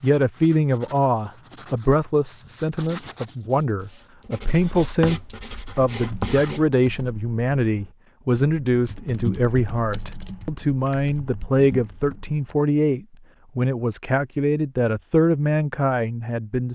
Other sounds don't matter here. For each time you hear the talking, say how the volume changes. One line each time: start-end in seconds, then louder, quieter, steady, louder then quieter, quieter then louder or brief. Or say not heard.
0.0-16.7 steady.